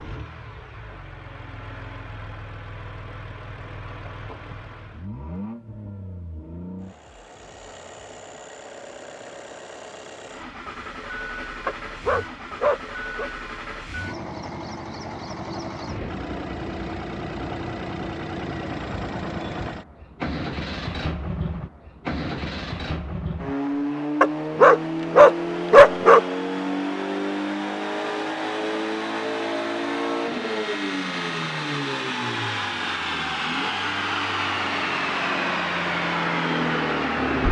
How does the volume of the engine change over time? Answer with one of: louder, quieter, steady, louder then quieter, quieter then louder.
louder.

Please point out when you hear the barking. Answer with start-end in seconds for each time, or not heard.
11.7-13.3, 24.2-26.2.